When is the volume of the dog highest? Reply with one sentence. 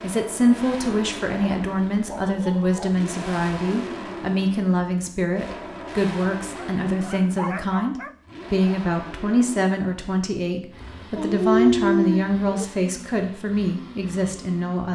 The loudest moment of the dog is at 12 seconds.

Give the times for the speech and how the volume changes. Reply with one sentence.
The speech can be heard from 0.0 to 14.8 s, at a steady volume.